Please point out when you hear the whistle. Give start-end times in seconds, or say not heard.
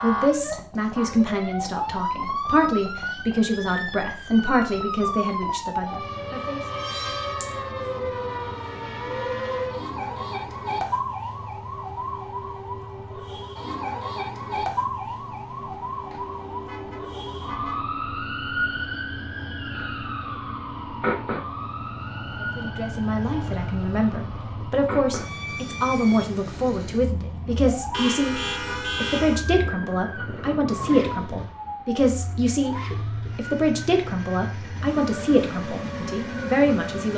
not heard.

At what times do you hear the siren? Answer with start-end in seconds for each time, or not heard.
0.0-37.1.